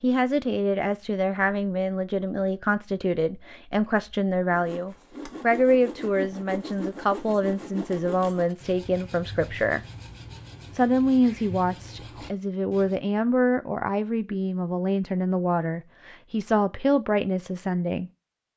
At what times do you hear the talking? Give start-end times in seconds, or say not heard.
0.0-9.8, 10.7-18.1.